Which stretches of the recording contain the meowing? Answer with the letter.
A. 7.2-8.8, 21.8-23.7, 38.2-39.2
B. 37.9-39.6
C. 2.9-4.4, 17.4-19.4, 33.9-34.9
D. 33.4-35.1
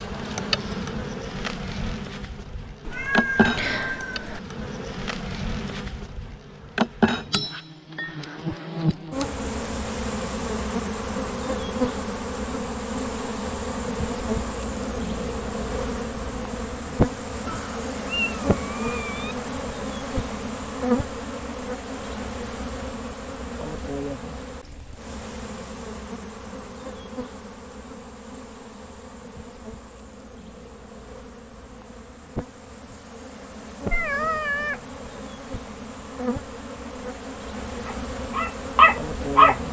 C.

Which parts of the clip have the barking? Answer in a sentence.
You can hear the barking from 37.9 to 39.6 s.